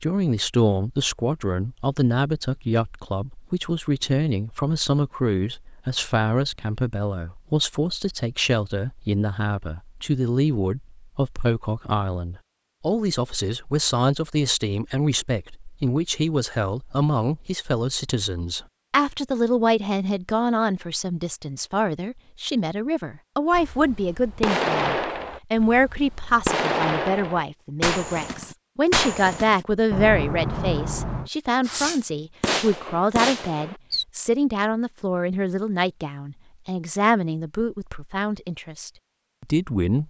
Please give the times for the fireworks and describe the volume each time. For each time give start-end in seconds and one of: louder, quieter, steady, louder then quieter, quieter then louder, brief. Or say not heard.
23.5-34.0 steady.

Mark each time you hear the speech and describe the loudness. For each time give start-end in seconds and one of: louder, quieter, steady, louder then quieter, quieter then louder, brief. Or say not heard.
0.0-40.0 steady.